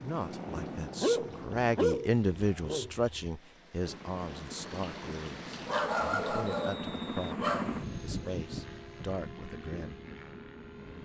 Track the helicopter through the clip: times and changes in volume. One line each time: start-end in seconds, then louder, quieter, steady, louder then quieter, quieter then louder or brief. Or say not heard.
0.0-1.8 brief
3.8-11.0 louder then quieter.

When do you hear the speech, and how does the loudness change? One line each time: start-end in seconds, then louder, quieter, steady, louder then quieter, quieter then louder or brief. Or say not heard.
0.0-10.1 quieter.